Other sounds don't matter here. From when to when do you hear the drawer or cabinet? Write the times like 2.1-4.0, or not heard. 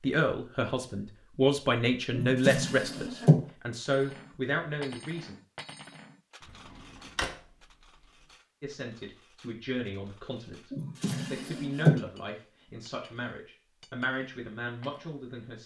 2.1-3.5, 6.5-7.3, 10.7-12.0.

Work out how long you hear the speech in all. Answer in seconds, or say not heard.
12 s.